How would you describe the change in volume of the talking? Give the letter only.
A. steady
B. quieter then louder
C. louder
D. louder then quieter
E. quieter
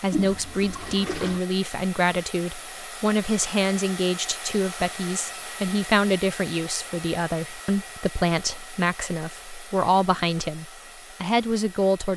A.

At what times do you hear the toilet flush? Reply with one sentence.
The toilet flush can be heard from 0.1 to 1.4 s.